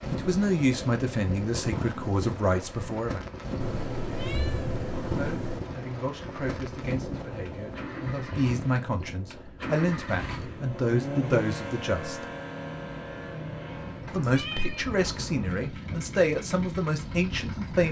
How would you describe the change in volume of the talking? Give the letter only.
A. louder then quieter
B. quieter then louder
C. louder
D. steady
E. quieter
B.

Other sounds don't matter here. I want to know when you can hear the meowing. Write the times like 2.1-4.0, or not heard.
3.6-5.6, 13.8-14.9.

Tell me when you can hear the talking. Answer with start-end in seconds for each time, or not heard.
0.1-3.2, 5.1-12.2, 14.1-17.8.